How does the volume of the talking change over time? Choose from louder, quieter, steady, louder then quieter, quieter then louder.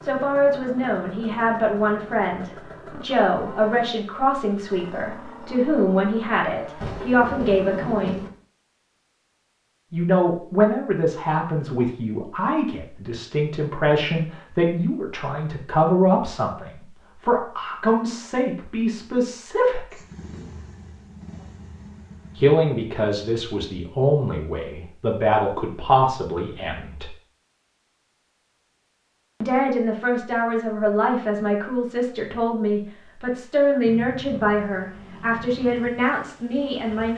steady.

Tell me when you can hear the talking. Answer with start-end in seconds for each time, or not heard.
0.0-8.2, 9.9-19.9, 22.4-27.1, 29.4-37.1.